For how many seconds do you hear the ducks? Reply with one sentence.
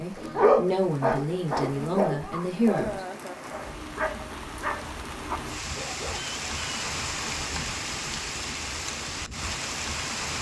You can't hear the ducks here.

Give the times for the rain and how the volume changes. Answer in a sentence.
You can hear the rain from 0.0 to 10.3 s, getting louder.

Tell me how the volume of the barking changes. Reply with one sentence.
The volume of the barking goes down.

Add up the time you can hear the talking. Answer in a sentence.
You can hear the talking for 3 seconds altogether.